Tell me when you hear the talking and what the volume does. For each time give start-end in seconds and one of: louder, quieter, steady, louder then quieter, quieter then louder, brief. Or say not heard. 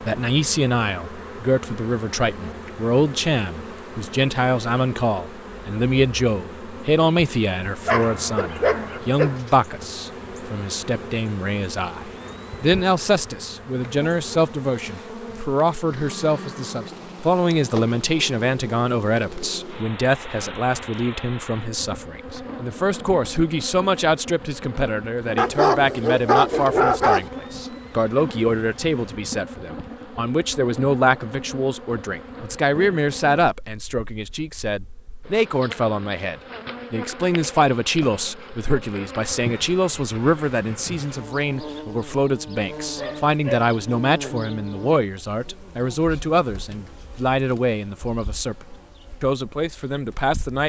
0.0-50.6 steady.